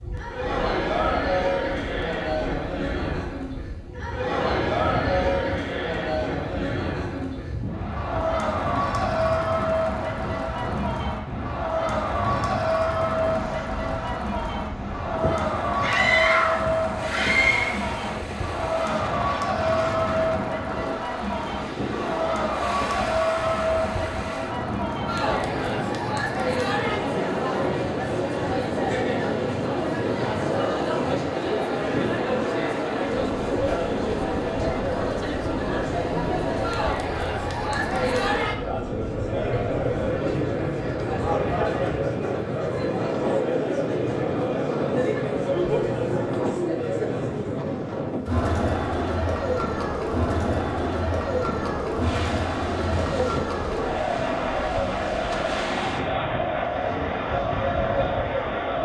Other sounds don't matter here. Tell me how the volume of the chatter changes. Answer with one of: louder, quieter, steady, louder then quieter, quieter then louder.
steady.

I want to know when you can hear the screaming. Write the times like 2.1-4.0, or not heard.
15.8-17.8.